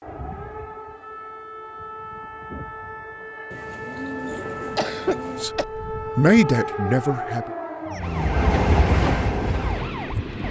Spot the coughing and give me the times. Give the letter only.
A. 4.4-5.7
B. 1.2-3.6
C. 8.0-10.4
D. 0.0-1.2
A.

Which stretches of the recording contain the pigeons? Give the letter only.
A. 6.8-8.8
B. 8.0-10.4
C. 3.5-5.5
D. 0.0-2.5
C.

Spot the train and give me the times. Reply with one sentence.
The train can be heard from 8.0 to 10.4 s.